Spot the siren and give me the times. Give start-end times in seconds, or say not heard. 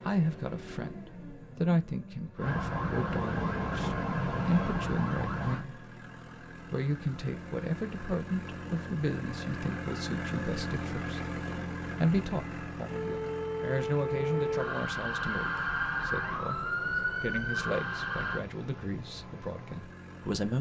2.4-5.7, 12.8-18.4.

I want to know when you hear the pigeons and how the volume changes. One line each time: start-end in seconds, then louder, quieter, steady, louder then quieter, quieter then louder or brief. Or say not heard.
not heard.